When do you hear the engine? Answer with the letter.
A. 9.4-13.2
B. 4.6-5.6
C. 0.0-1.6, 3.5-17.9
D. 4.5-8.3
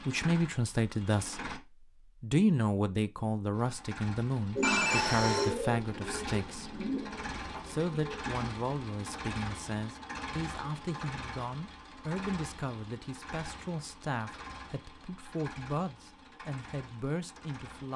C.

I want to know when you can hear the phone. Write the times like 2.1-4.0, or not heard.
4.6-5.6.